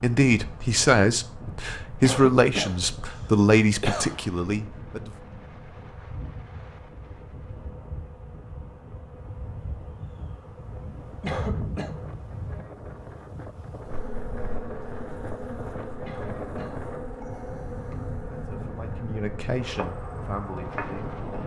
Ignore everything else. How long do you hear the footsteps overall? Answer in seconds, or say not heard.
not heard.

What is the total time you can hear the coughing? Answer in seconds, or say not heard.
4 s.